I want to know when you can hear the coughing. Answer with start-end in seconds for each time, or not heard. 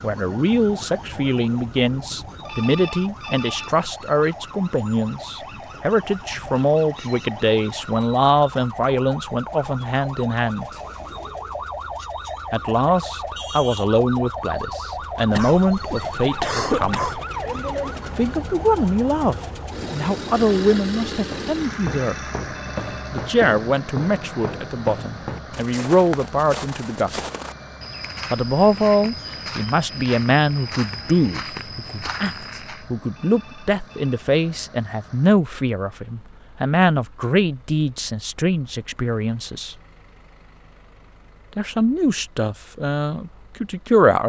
15.3-17.2.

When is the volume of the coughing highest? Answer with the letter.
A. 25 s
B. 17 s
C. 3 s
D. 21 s
B.